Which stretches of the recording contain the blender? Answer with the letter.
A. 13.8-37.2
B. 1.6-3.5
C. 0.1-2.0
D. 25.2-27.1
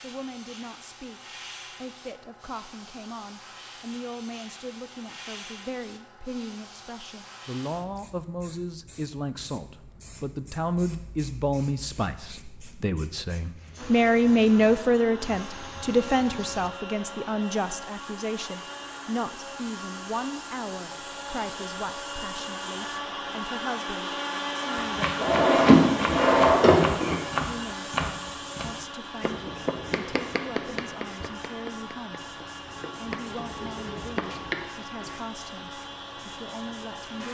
A.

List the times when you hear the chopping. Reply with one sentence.
The chopping can be heard from 24.8 to 35.1 s.